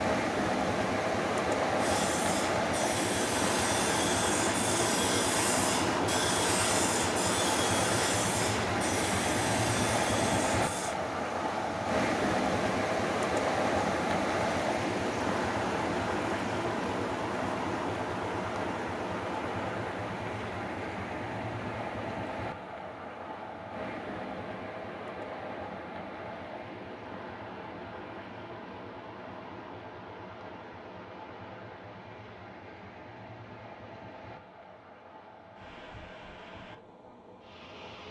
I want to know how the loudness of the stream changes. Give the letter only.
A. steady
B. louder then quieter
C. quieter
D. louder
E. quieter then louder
C.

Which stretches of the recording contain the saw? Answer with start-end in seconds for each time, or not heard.
1.8-10.9.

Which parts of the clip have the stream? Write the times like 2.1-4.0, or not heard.
0.0-38.0.